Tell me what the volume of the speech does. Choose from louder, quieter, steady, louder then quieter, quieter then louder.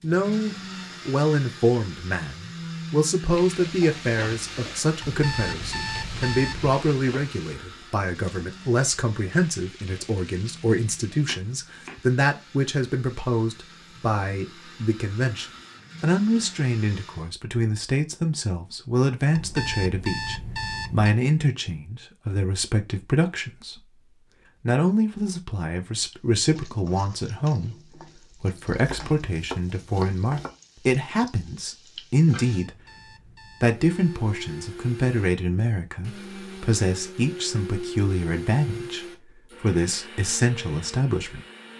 steady.